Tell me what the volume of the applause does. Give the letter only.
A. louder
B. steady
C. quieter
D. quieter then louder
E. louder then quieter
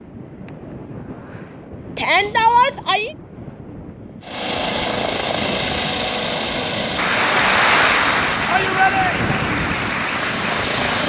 C.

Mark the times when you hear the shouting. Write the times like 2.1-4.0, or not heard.
1.9-3.1, 8.4-9.3.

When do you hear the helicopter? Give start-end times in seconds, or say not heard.
4.2-11.0.